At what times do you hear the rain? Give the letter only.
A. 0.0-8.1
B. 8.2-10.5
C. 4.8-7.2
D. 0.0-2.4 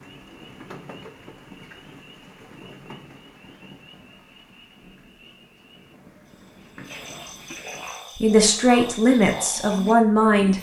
A.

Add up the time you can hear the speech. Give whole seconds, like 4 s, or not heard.
2 s.